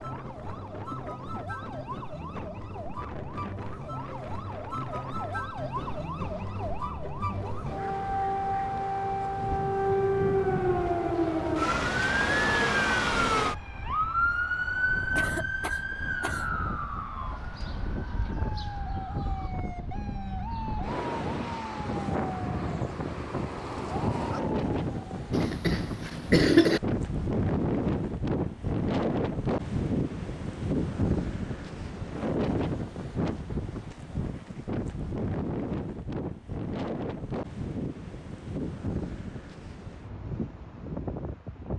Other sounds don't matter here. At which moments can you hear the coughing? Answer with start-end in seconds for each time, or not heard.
15.2-16.5, 25.3-26.8.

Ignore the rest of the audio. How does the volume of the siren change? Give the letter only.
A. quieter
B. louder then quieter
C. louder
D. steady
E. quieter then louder
B.